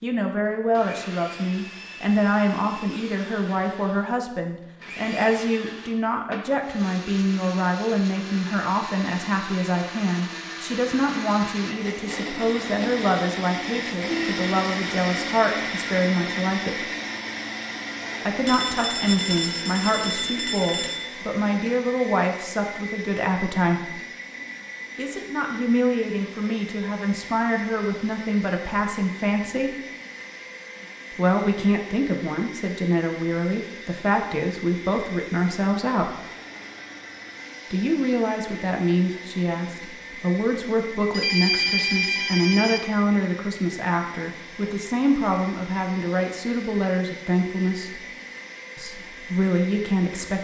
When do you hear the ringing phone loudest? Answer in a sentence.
The volume of the ringing phone peaks at 42 seconds.